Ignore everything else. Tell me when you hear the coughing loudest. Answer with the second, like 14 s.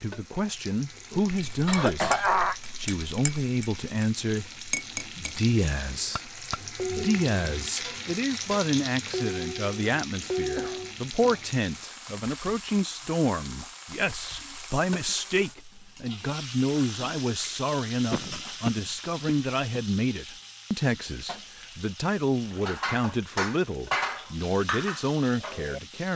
2 s.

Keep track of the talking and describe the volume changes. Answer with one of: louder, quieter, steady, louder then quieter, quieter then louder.
steady.